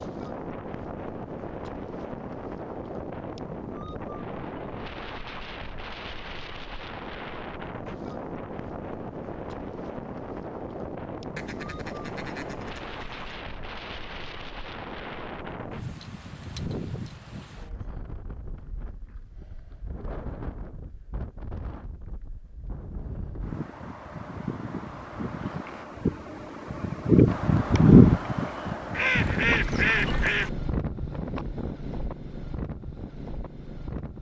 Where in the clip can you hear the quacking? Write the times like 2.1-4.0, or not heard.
11.3-13.4, 28.9-30.5.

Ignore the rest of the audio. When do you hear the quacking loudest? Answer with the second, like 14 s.
30 s.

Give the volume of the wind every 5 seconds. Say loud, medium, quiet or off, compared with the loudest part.
quiet, quiet, quiet, quiet, quiet, loud, quiet.